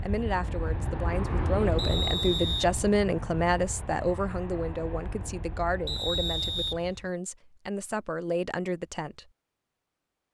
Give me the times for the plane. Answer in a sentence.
You can hear the plane from 0.0 to 7.1 s.